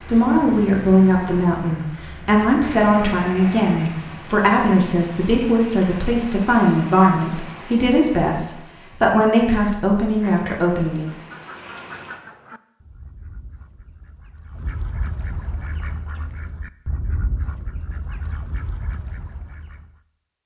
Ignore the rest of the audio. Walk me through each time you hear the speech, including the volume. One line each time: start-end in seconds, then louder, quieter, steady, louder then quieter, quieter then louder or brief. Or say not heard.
0.1-11.1 steady.